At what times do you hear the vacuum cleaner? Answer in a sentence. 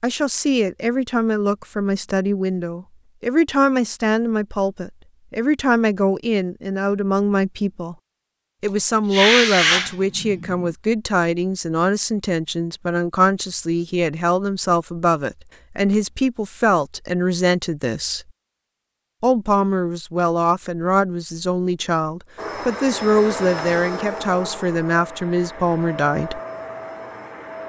You can hear the vacuum cleaner from 22.4 to 27.6 s.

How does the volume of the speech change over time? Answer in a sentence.
The volume of the speech stays about the same.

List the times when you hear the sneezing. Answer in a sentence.
The sneezing can be heard from 9.1 to 10.7 s.